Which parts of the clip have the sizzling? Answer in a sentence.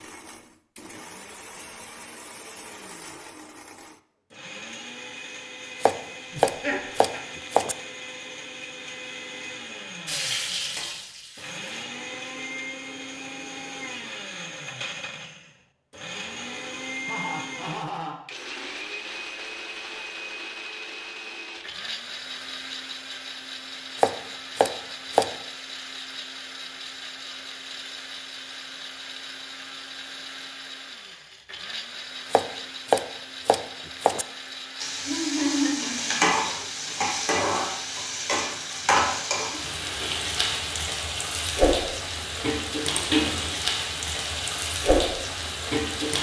You can hear the sizzling from 10.1 to 11.8 s and from 34.8 to 46.1 s.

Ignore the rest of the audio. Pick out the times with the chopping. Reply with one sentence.
You can hear the chopping from 5.8 to 7.8 s, from 23.9 to 25.4 s and from 32.3 to 34.2 s.